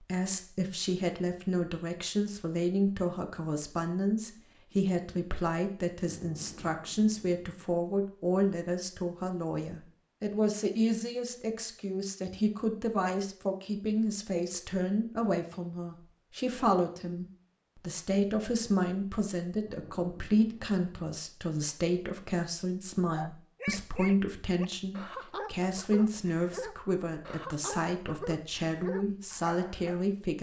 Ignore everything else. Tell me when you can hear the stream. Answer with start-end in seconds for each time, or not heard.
not heard.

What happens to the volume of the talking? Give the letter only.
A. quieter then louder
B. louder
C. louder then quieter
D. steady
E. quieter
D.